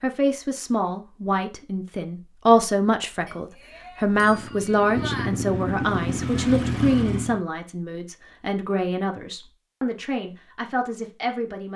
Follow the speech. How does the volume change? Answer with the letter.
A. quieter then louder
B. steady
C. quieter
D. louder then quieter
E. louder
C.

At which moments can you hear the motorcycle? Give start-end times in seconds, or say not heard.
4.0-7.4.